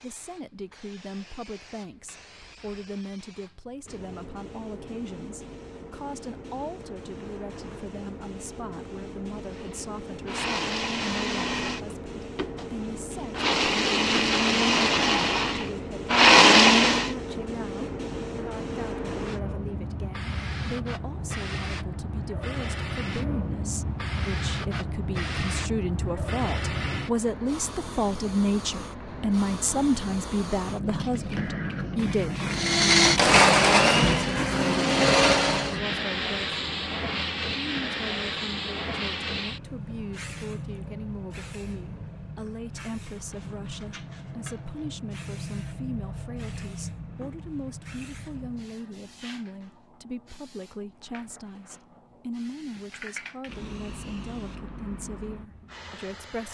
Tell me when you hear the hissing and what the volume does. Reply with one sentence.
The hissing can be heard from 0.0 to 56.5 s, getting louder then quieter.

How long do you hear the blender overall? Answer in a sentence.
You can hear the blender for 11 seconds altogether.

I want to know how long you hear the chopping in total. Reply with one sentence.
The chopping can't be heard in this clip.